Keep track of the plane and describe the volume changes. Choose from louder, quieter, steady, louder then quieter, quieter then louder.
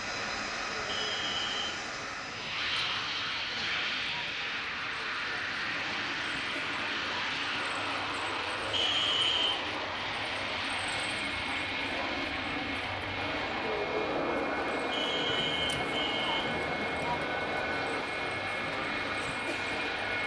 steady.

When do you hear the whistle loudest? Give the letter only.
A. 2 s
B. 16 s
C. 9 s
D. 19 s
C.